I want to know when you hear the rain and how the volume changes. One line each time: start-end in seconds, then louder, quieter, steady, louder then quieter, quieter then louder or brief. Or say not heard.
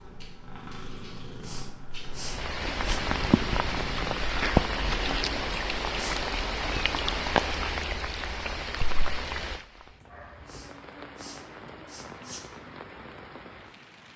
2.1-14.1 quieter.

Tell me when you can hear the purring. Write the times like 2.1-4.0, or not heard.
0.0-5.5.